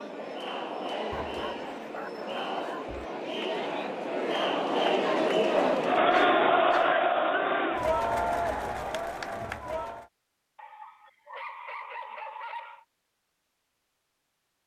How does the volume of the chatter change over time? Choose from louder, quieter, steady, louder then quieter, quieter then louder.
louder then quieter.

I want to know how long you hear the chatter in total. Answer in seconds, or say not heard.
10 s.